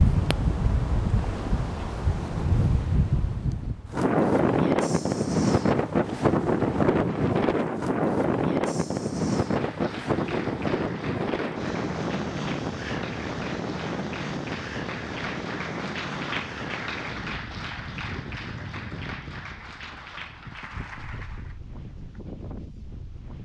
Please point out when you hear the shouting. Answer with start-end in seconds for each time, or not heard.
not heard.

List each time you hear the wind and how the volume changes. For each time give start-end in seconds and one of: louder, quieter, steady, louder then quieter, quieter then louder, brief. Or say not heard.
0.0-23.4 quieter.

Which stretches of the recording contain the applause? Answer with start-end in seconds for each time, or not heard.
9.4-21.6.